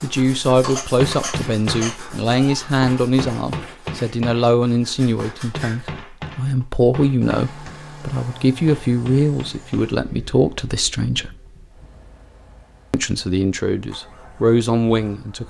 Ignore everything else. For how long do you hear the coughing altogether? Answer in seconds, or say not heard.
2 s.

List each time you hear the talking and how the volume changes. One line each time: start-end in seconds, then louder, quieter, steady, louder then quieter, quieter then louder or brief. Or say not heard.
0.0-11.3 steady
12.9-15.4 brief.